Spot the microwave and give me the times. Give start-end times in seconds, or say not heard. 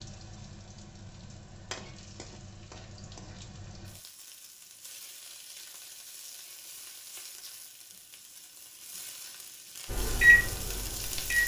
9.9-11.4.